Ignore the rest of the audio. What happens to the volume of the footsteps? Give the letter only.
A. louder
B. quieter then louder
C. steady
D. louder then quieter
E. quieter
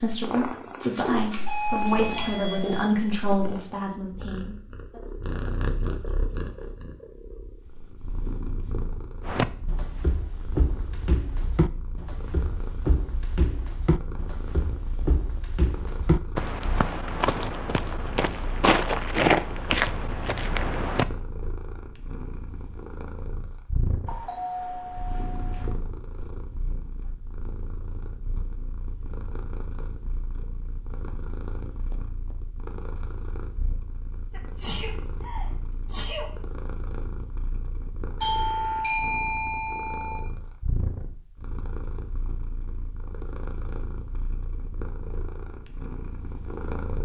A.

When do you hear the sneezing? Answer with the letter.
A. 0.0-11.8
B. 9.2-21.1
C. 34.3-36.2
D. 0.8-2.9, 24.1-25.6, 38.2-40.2
C.